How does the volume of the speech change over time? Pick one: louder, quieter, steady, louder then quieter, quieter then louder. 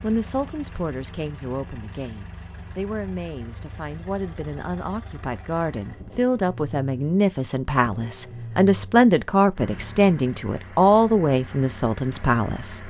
louder.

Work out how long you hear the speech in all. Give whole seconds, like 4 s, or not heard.
13 s.